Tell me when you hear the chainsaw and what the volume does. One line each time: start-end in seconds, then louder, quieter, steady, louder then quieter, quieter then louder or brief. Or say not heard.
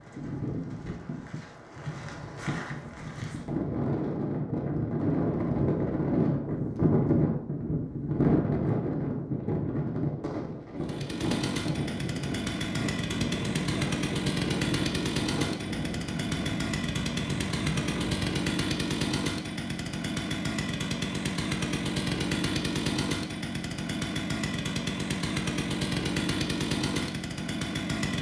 10.8-28.1 steady.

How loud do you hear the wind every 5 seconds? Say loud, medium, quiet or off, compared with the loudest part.
medium, loud, medium, medium, off, off.